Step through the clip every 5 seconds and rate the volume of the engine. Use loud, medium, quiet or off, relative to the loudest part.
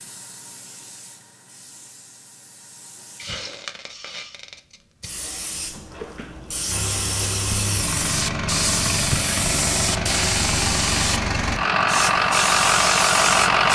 off, medium, loud.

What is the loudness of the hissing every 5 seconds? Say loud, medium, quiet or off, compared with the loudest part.
quiet, loud, loud.